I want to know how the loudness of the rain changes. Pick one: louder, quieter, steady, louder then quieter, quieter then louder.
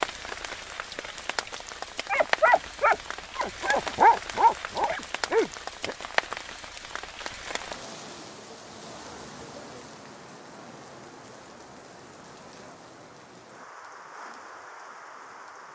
quieter.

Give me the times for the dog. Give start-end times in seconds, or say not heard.
2.1-6.0.